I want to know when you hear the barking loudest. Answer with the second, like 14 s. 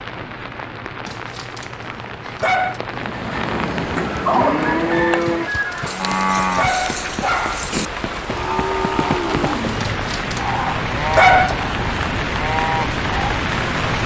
11 s.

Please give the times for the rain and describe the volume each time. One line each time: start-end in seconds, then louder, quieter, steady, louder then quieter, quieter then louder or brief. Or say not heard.
0.0-14.0 louder.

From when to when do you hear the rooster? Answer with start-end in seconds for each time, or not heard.
4.0-6.0.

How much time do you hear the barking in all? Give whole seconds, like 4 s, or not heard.
6 s.